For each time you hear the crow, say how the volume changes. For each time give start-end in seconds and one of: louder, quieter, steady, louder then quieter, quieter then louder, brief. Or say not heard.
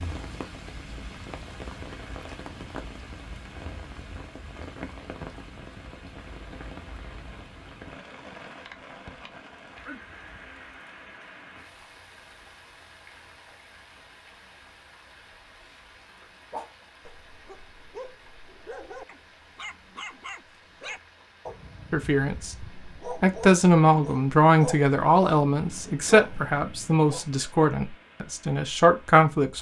not heard.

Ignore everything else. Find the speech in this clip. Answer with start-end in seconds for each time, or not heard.
21.9-29.5.